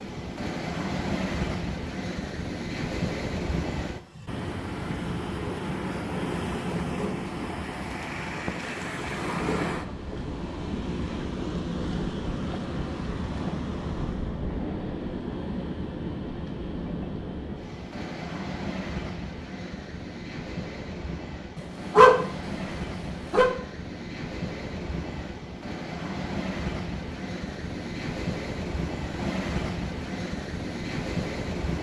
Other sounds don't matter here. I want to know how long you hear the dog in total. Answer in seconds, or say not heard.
2 s.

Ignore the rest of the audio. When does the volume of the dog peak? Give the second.
22 s.